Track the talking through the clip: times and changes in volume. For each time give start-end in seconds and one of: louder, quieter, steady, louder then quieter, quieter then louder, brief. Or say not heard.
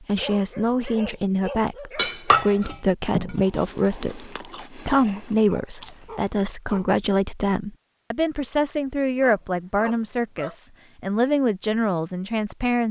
0.0-12.8 steady.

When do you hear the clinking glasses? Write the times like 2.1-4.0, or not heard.
1.9-3.4.